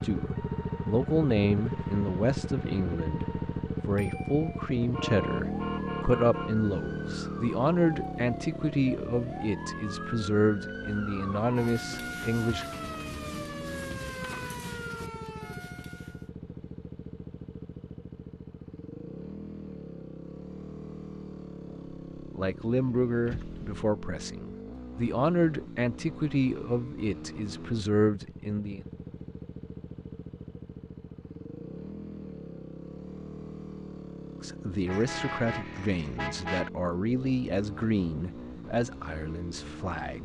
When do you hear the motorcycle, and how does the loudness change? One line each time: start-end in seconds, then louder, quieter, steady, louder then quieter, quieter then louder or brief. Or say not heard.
0.0-40.1 quieter.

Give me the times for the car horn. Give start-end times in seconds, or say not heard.
4.0-6.5, 23.2-23.9, 34.9-36.7.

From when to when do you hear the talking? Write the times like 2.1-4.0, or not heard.
0.0-12.7, 22.1-28.9, 34.4-40.1.